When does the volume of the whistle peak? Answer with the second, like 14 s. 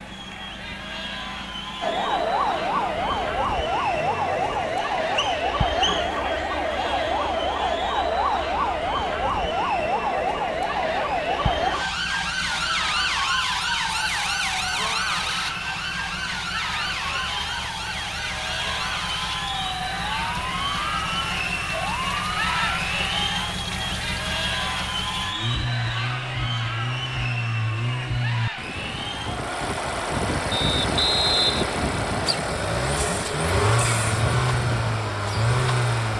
31 s.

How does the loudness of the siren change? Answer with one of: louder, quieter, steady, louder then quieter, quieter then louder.
quieter.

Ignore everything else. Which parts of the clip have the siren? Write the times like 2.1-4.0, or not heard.
1.8-22.8.